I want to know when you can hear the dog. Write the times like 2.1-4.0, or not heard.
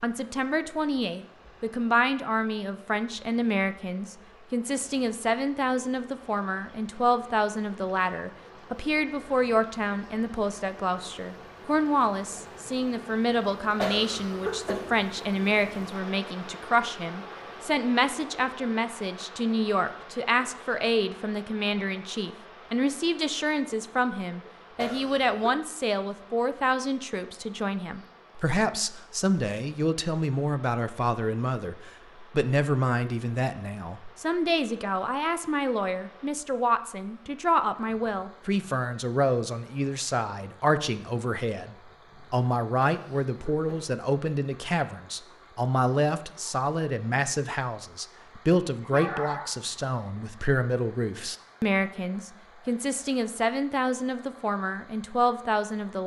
48.9-49.6.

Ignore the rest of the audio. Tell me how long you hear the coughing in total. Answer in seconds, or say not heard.
3 s.